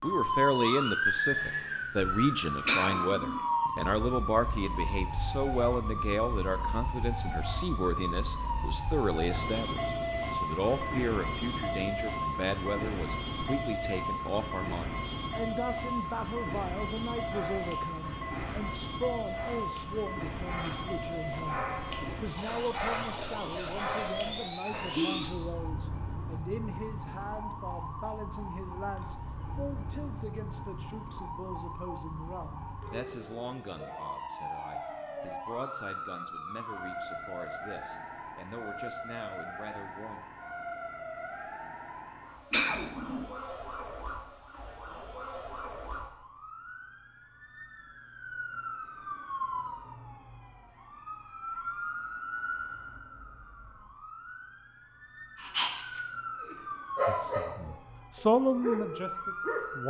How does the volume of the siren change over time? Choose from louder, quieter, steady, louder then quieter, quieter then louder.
quieter.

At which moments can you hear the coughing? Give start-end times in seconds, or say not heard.
2.6-3.4, 42.5-43.2.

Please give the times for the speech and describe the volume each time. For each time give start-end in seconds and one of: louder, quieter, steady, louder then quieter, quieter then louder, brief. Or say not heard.
0.0-40.2 quieter
57.0-59.8 brief.